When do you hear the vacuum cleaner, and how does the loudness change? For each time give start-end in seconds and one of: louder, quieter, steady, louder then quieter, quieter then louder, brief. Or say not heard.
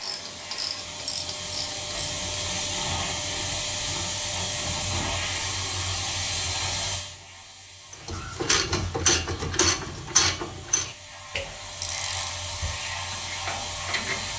0.0-14.3 quieter then louder.